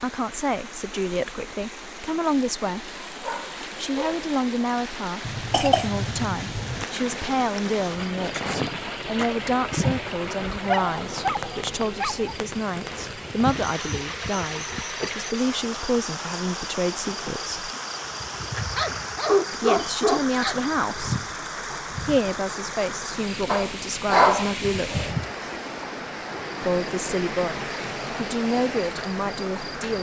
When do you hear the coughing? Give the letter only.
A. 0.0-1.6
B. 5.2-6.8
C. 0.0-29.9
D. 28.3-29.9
B.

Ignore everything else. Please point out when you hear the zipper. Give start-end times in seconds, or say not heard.
not heard.